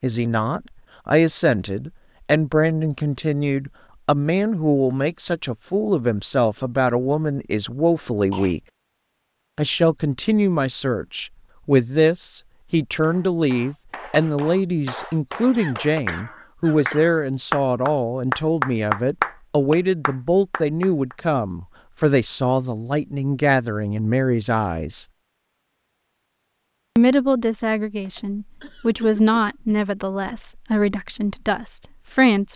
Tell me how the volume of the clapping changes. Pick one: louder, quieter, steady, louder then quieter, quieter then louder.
louder then quieter.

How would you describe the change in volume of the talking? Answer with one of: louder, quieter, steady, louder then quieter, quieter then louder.
steady.